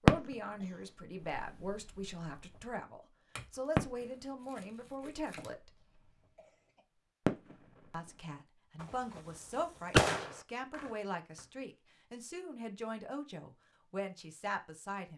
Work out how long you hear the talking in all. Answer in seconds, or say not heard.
13 s.